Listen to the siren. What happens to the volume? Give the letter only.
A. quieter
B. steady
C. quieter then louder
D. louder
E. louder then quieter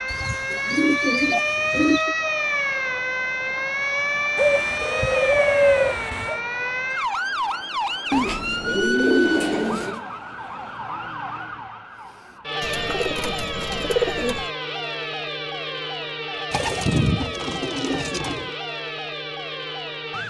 A.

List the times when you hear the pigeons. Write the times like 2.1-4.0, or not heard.
0.1-2.1, 4.3-6.4, 8.1-10.0, 12.6-14.5, 16.5-18.5.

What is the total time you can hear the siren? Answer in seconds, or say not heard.
20 s.